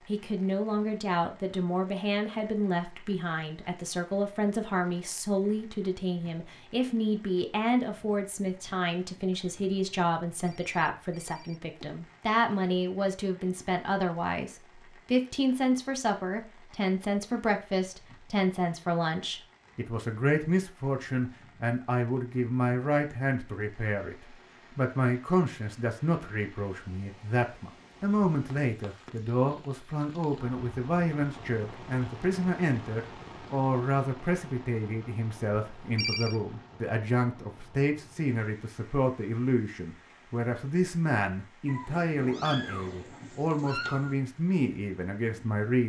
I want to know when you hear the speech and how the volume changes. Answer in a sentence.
You can hear the speech from 0.1 to 45.8 s, at a steady volume.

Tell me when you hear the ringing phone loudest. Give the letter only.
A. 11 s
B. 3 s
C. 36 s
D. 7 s
C.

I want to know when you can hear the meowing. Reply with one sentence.
You can hear the meowing from 41.6 to 44.1 s.